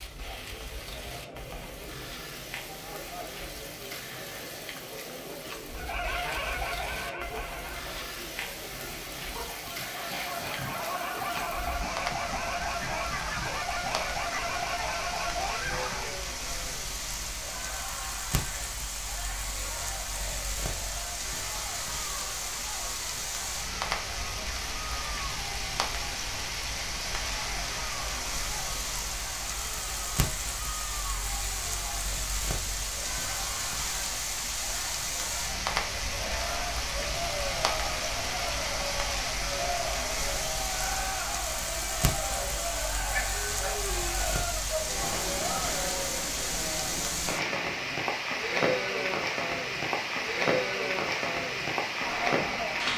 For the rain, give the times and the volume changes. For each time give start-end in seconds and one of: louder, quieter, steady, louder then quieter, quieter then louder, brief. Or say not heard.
0.0-52.9 louder.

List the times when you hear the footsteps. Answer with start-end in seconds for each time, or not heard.
not heard.